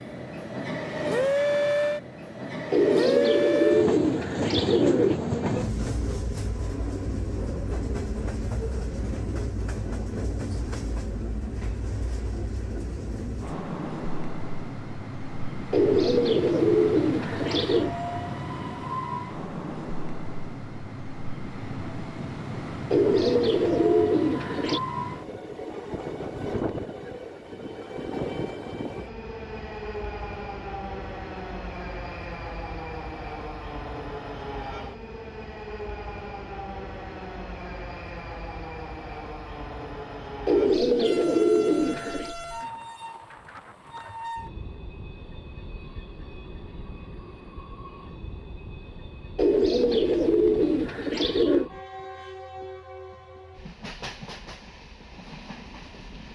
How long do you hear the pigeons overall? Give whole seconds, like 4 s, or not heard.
11 s.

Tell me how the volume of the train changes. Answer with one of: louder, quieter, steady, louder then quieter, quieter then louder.
quieter.